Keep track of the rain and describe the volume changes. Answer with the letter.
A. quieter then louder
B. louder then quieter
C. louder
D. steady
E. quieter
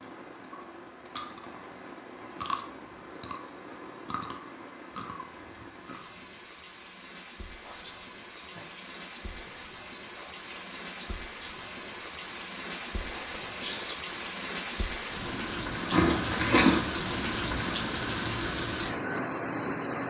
C.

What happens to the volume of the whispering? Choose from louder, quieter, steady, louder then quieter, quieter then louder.
louder.